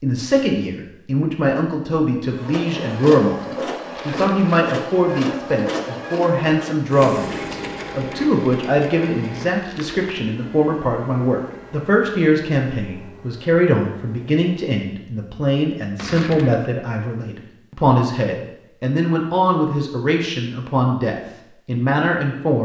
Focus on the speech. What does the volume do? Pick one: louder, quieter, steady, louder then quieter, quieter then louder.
steady.